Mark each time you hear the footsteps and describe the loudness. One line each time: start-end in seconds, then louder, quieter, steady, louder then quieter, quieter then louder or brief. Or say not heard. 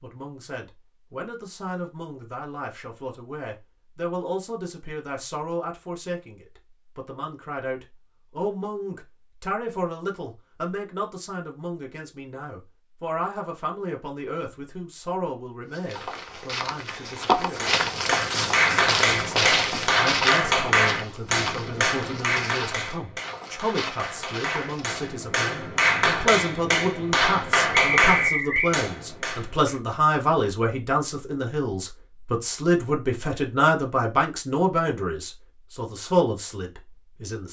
15.7-25.1 quieter.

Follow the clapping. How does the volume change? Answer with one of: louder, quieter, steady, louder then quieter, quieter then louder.
quieter then louder.